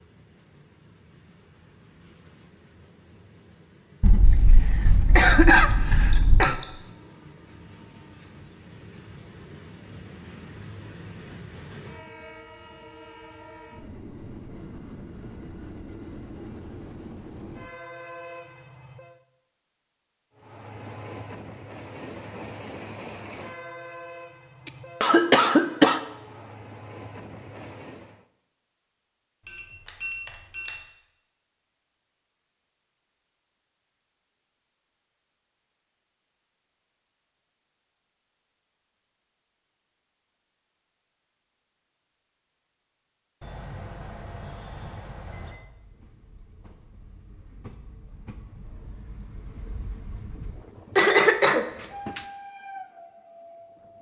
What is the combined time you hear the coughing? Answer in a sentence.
The coughing can be heard for 5 seconds in total.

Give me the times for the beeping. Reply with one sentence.
The beeping can be heard from 6.1 to 6.8 s, from 29.4 to 30.8 s and from 43.4 to 45.6 s.